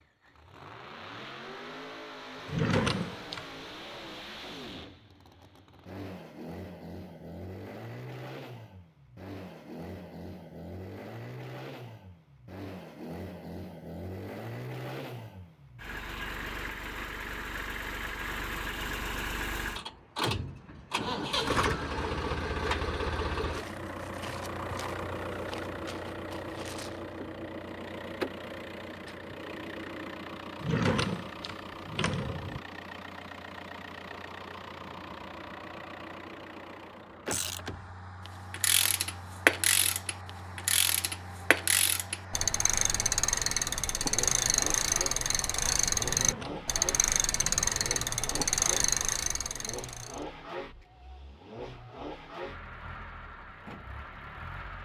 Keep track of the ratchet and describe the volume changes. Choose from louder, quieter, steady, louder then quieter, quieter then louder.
steady.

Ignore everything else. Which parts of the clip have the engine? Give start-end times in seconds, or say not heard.
0.0-54.8.